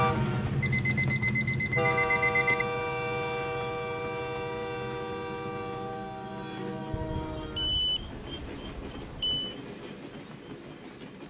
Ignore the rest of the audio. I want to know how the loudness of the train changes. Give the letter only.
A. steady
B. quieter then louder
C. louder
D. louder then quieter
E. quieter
E.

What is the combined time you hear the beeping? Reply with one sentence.
You can hear the beeping for 5 seconds altogether.